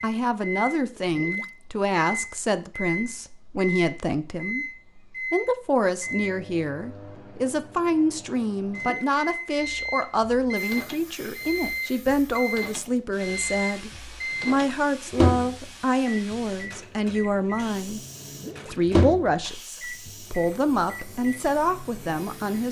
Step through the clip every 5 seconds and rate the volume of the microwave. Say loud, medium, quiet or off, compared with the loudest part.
loud, medium, loud, loud, quiet.